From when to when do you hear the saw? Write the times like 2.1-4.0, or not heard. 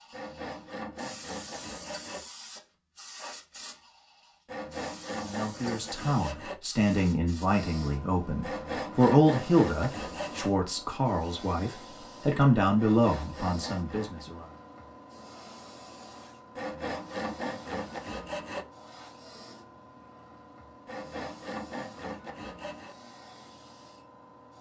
0.1-2.2, 4.5-6.6, 8.4-10.5, 12.8-14.2, 16.6-18.6, 20.9-22.9.